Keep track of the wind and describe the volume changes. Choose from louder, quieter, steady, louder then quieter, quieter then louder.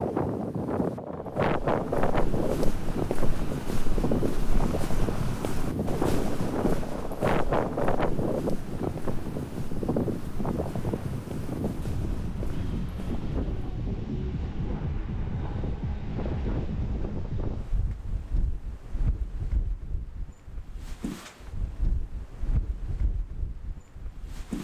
quieter.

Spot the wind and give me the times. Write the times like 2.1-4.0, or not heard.
0.0-24.5.